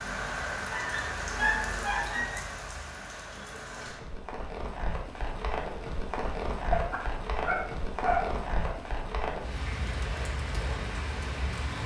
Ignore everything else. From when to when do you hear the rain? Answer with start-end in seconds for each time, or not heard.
0.0-11.8.